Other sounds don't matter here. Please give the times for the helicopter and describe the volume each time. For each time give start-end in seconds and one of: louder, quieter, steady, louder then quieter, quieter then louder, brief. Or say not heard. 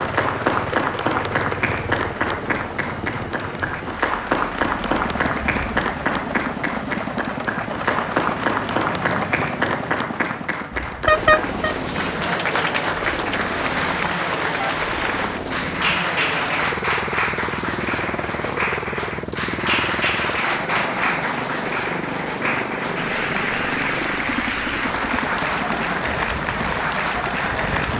0.0-27.9 steady.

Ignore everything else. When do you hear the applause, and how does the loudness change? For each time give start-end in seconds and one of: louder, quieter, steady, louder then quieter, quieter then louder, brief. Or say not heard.
0.0-27.9 steady.